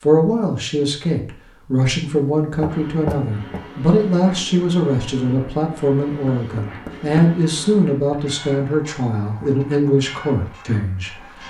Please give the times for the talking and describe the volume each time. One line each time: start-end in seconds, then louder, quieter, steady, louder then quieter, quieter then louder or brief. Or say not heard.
0.0-11.4 steady.